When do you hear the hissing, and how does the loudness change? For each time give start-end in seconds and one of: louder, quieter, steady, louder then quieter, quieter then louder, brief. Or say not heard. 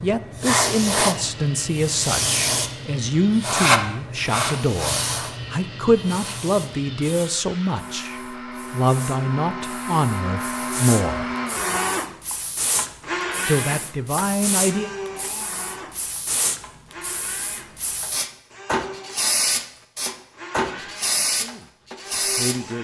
0.0-22.6 quieter then louder.